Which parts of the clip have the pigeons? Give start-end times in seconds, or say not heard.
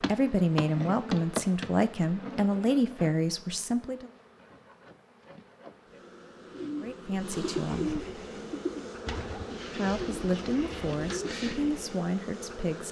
6.5-11.7.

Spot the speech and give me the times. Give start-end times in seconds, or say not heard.
0.0-4.1, 6.8-7.9, 9.7-12.8.